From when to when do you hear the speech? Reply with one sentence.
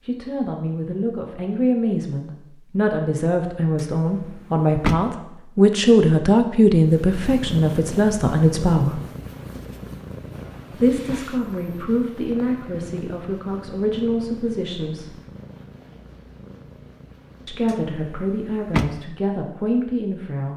You can hear the speech from 0.1 to 9.0 s, from 10.7 to 15.2 s and from 17.4 to 20.5 s.